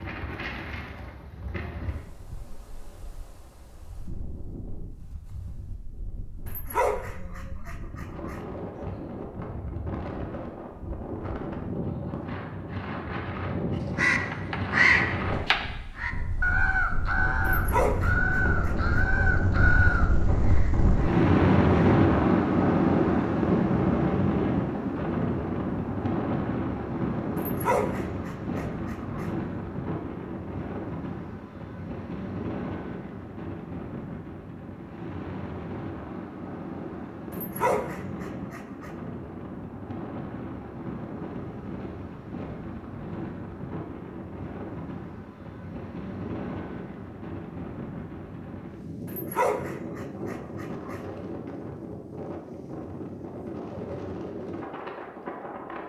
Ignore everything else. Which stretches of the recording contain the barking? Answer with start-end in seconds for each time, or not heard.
6.5-8.4, 17.5-19.0, 27.4-29.3, 37.3-38.9, 49.0-51.0.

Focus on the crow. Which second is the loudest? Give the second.
15 s.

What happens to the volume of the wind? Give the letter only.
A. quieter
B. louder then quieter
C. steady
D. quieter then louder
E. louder
B.